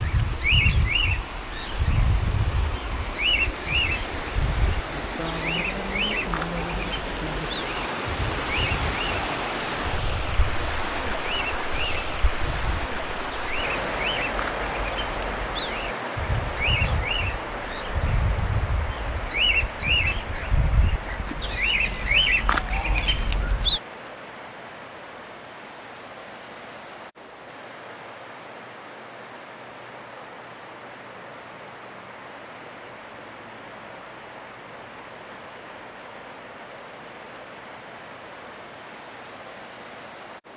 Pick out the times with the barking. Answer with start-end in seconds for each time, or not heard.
not heard.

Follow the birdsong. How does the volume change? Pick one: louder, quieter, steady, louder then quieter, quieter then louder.
quieter then louder.